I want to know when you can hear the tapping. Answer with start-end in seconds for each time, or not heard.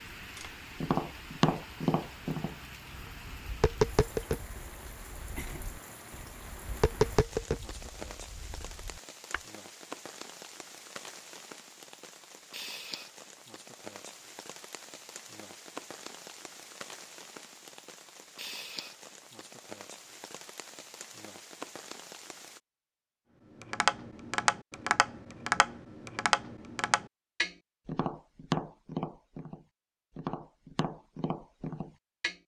0.3-9.4, 23.6-32.4.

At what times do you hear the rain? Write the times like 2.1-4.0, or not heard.
0.0-22.6.